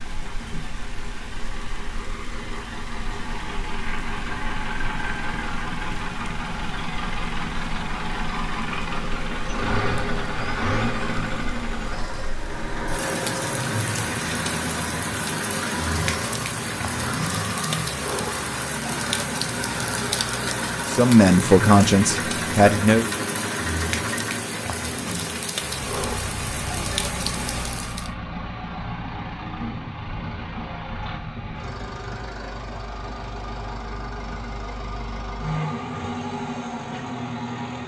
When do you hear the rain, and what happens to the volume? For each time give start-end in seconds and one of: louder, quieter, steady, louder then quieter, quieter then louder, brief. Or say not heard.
0.0-28.1 louder.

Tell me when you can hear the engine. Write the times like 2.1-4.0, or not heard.
0.0-37.8.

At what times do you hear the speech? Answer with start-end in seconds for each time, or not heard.
20.9-23.1.